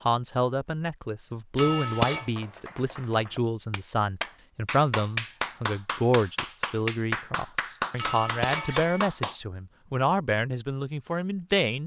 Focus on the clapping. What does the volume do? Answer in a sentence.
The loudness of the clapping goes up.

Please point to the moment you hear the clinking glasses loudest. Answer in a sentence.
The volume of the clinking glasses peaks at 2 seconds.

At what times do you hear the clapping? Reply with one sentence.
The clapping can be heard from 2.0 to 9.3 s.